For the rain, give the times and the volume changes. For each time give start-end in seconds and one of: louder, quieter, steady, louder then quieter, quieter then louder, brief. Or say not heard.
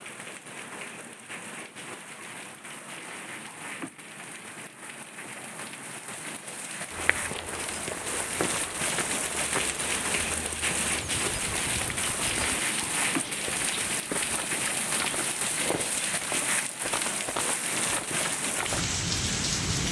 0.0-19.8 louder.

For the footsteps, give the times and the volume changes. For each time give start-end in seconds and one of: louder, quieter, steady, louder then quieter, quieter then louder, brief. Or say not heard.
6.9-18.9 steady.